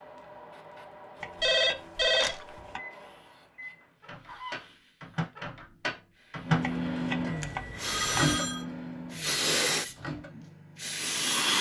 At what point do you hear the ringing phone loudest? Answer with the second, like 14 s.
2 s.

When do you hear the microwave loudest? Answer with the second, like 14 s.
7 s.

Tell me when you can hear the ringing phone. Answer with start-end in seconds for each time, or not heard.
1.4-2.5, 7.4-8.7.